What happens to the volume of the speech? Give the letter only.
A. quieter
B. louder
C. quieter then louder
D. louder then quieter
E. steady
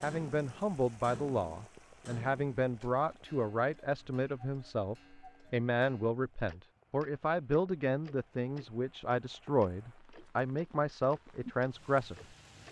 E.